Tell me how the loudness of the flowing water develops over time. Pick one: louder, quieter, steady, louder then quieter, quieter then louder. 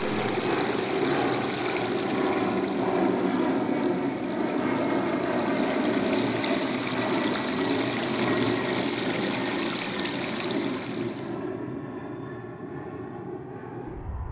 quieter then louder.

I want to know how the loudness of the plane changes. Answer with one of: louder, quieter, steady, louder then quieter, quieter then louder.
quieter.